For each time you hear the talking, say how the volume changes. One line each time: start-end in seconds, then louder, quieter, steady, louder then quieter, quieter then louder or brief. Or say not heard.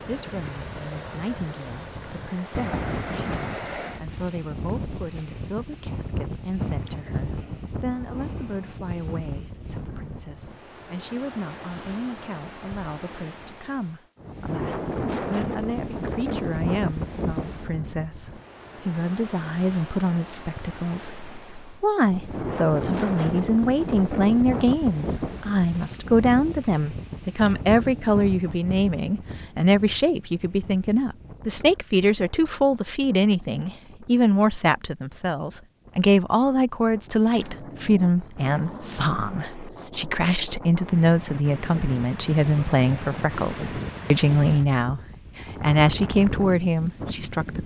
0.0-47.6 louder.